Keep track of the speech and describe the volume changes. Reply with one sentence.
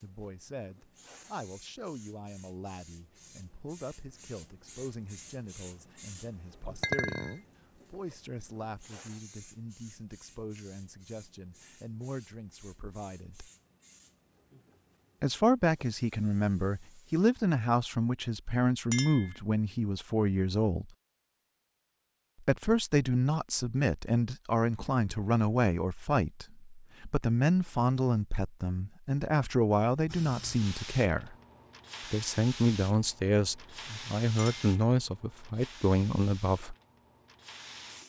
The volume of the speech goes up.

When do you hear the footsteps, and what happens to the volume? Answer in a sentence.
You can't hear the footsteps here.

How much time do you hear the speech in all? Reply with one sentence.
You can hear the speech for 33 seconds altogether.